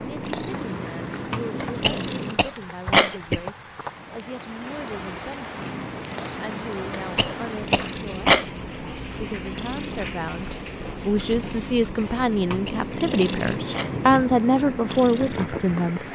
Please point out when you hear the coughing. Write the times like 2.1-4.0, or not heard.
1.6-3.4, 7.0-8.5, 12.4-14.2.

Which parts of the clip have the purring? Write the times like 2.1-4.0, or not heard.
0.0-2.4, 5.5-16.1.